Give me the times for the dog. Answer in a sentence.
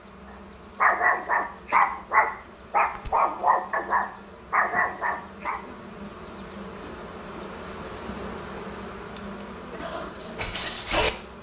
You can hear the dog from 0.8 to 5.6 s and from 9.8 to 11.1 s.